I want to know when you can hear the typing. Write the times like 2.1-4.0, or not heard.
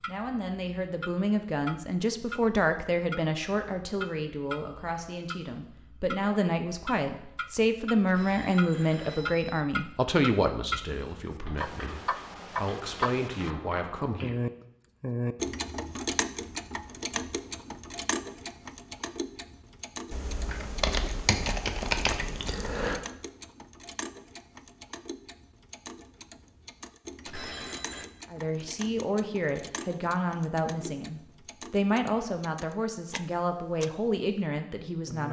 11.4-14.2, 20.1-23.0.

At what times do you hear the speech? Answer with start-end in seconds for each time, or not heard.
0.1-14.3, 28.3-35.2.